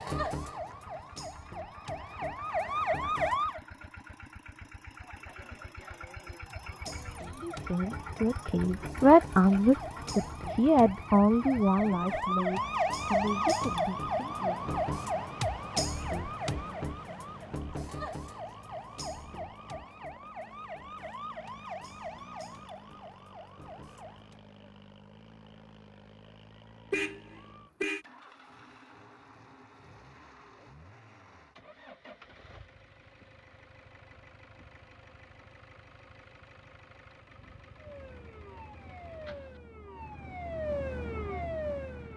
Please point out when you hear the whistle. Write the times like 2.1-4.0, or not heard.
not heard.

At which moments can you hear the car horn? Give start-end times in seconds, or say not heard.
26.9-28.1.